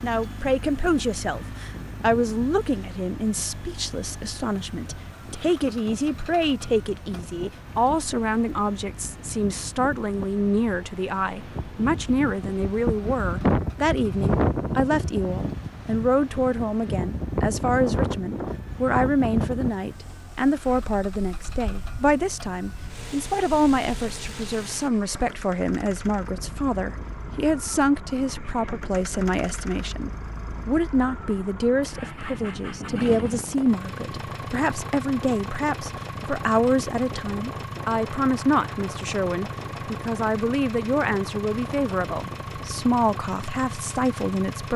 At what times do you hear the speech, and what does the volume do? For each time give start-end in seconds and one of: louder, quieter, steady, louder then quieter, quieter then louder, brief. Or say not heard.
0.0-44.7 steady.